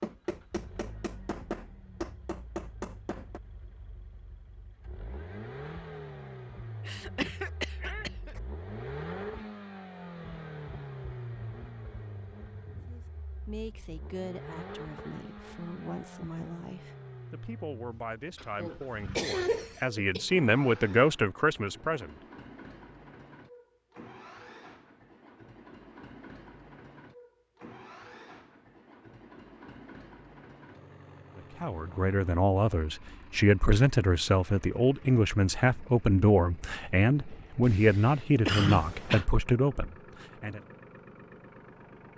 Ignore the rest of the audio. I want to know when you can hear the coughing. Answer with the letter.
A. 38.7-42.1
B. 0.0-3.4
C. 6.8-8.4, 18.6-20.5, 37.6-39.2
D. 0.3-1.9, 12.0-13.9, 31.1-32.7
C.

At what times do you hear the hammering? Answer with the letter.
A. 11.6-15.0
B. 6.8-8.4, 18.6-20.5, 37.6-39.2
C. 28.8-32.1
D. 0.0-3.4
D.